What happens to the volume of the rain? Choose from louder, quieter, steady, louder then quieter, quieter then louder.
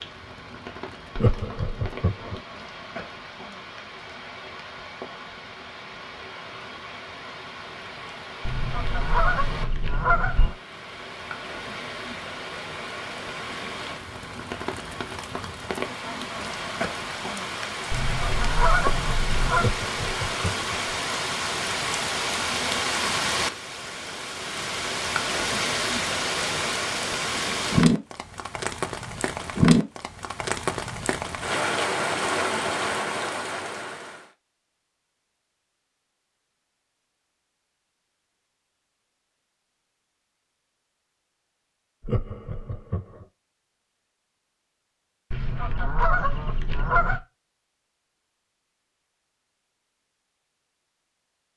louder.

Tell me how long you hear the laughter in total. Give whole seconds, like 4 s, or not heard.
4 s.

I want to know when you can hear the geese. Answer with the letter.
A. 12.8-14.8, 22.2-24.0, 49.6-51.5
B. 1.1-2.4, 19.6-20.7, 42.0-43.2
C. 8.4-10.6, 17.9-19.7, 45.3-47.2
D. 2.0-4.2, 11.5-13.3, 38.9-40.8
C.